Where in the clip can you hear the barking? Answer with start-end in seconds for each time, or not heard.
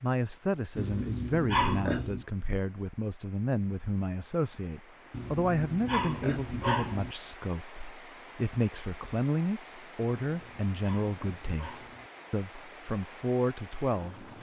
0.8-2.2, 5.1-7.2, 10.3-12.1.